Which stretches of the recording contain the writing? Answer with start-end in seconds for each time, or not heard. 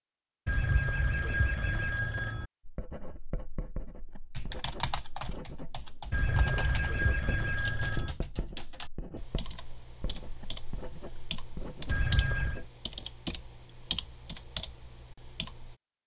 2.6-12.7.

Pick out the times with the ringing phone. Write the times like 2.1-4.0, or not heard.
0.5-2.5, 6.1-8.2, 11.8-12.6.